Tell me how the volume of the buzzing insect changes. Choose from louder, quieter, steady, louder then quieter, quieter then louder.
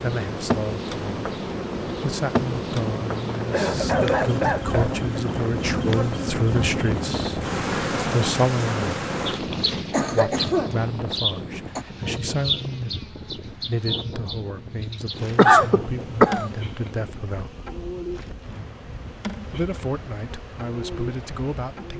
quieter.